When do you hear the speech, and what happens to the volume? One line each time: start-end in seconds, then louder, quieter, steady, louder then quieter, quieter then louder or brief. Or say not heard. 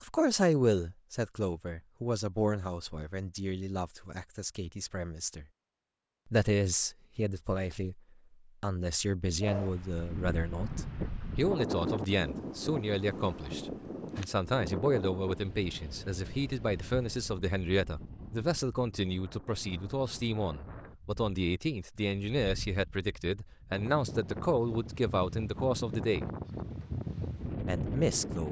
0.0-5.5 quieter
6.2-8.0 brief
8.6-26.3 steady
27.6-28.4 brief.